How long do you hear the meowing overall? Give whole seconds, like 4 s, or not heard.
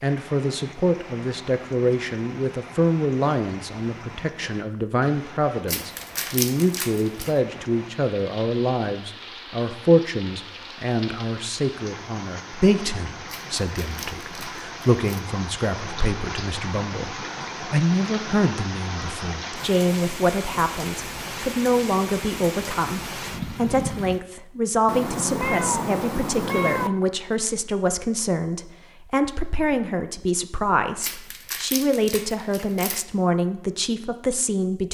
2 s.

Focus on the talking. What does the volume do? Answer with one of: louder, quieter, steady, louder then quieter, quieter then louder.
steady.